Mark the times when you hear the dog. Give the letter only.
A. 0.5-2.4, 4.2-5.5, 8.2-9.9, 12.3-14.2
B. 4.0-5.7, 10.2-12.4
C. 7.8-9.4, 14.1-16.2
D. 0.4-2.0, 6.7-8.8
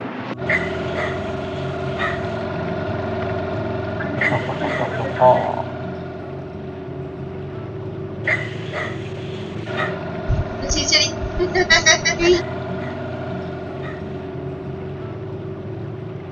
A.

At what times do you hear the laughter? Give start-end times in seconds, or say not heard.
4.0-5.7, 10.2-12.4.